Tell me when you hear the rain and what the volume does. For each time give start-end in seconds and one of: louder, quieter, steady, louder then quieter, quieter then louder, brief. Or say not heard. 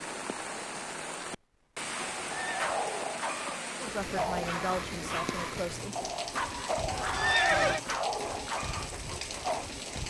0.0-10.0 steady.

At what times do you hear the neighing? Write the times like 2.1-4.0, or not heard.
2.1-2.9, 6.8-7.8.